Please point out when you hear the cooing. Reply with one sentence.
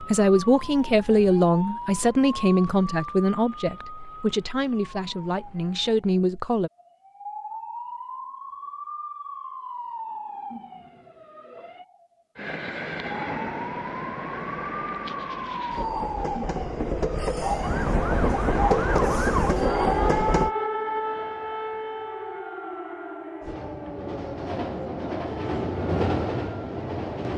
You can't hear the cooing here.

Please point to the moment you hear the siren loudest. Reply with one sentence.
The loudest moment of the siren is at 20 seconds.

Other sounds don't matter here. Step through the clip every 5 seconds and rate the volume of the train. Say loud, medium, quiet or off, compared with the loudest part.
off, off, medium, loud, loud, loud.